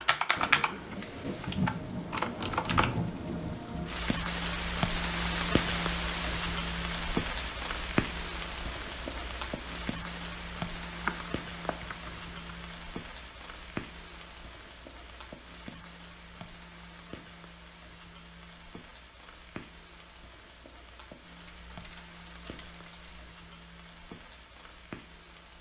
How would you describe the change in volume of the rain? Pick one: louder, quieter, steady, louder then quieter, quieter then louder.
quieter.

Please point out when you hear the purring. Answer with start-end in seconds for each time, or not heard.
not heard.